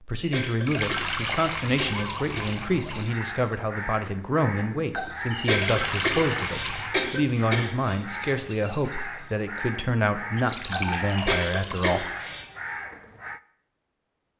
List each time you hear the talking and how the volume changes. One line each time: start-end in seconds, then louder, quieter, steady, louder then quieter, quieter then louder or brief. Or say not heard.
0.1-12.1 steady.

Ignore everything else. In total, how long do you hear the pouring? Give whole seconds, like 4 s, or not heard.
6 s.